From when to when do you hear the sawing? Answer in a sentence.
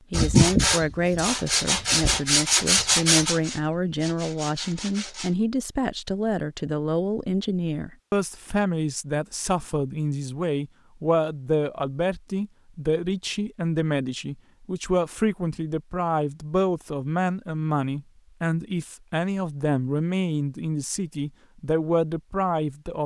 The sawing can be heard from 0.1 to 5.3 s.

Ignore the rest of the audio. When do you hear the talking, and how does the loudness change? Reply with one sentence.
The talking can be heard from 0.1 to 23.0 s, at a steady volume.